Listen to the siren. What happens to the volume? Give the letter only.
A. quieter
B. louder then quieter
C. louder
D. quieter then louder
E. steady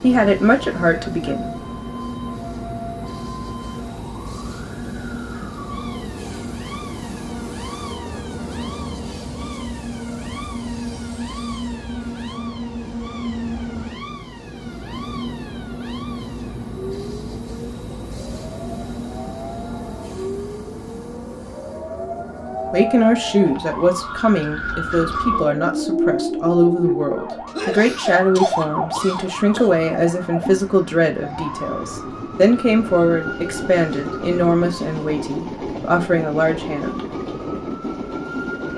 B.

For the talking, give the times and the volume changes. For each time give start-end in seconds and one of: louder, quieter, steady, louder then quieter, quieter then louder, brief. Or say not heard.
0.0-1.5 brief
22.7-37.0 steady.